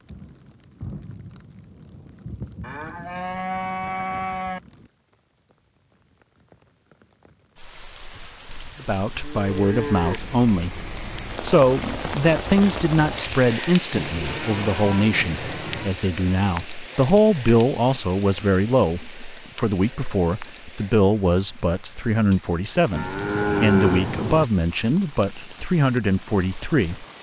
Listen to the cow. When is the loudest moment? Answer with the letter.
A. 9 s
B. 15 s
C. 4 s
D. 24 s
D.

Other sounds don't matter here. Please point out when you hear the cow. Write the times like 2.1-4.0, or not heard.
2.6-4.6, 8.4-10.2, 13.9-15.9, 22.9-24.4.